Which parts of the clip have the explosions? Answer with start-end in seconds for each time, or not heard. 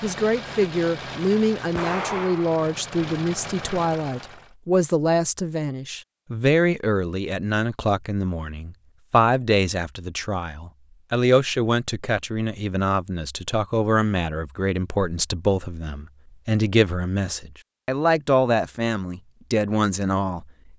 1.8-2.6.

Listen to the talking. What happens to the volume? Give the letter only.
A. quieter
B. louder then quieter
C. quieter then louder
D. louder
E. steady
E.